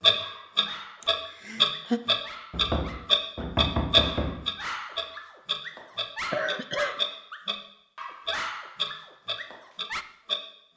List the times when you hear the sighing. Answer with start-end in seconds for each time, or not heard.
1.0-2.0, 6.3-7.0.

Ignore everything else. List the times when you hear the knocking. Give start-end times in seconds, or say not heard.
2.5-4.5.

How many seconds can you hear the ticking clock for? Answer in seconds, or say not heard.
10 s.